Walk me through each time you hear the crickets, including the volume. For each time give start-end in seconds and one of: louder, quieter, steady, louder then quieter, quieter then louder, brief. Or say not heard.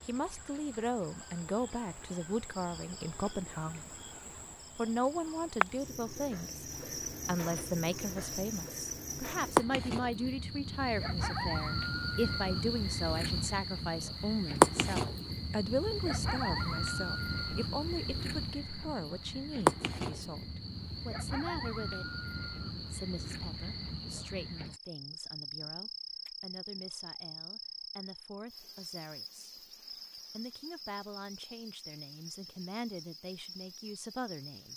0.0-34.7 louder then quieter.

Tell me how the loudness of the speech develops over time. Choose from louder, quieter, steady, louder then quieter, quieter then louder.
quieter.